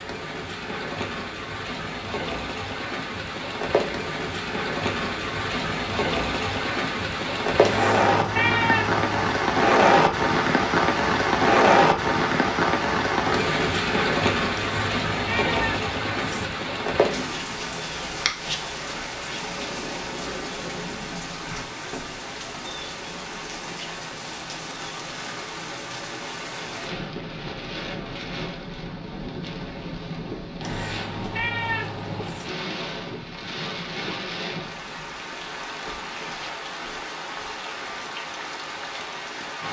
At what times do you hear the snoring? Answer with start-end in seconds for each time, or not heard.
not heard.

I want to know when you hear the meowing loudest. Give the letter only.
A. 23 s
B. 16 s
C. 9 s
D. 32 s
C.